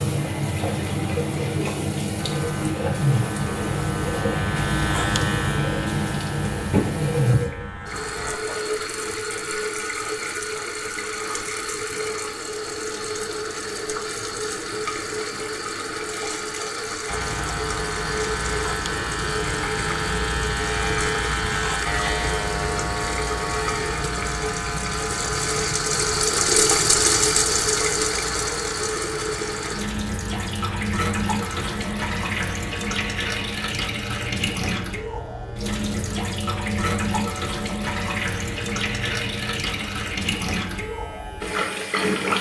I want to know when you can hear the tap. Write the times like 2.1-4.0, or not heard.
0.0-42.3.